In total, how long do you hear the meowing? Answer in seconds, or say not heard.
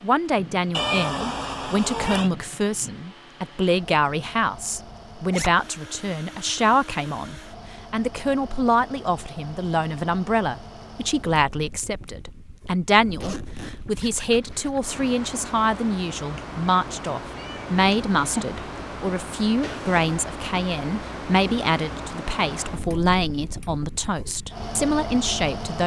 4 s.